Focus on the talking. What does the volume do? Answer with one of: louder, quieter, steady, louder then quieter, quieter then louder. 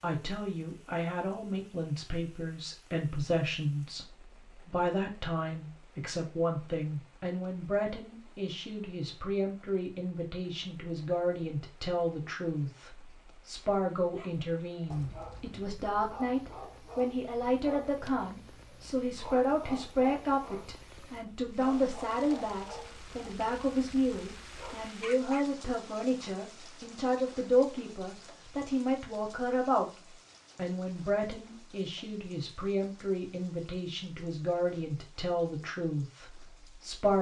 steady.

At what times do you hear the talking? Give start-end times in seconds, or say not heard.
0.0-29.9, 30.6-37.1.